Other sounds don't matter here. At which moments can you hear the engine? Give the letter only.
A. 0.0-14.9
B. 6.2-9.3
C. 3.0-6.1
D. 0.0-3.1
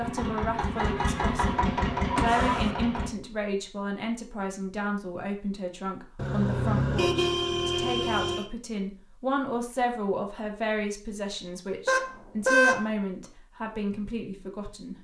D.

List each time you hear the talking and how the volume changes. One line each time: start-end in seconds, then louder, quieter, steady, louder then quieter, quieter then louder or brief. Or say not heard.
0.0-14.9 steady.